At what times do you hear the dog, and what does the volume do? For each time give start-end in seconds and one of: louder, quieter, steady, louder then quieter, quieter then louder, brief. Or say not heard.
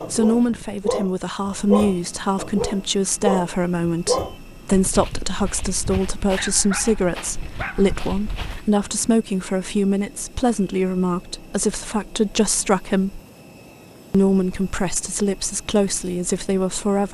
0.0-8.7 quieter.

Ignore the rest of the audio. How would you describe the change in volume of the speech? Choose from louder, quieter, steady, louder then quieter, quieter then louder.
steady.